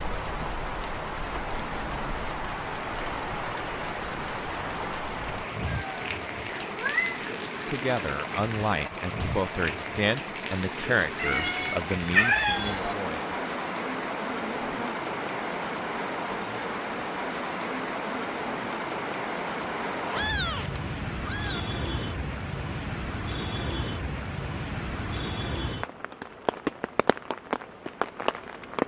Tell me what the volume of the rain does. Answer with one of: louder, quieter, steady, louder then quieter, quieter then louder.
steady.